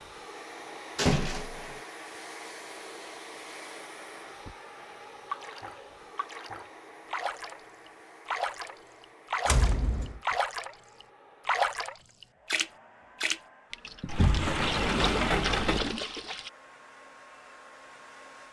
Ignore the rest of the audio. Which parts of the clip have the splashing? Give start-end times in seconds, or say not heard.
5.3-16.5.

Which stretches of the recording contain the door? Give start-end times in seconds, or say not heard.
0.9-1.8, 9.4-10.2, 14.1-15.9.